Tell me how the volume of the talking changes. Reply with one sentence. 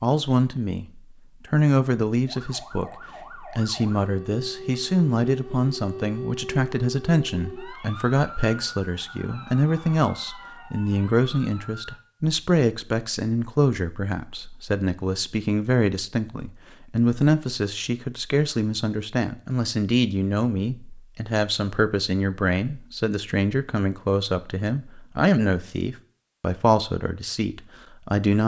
The loudness of the talking stays about the same.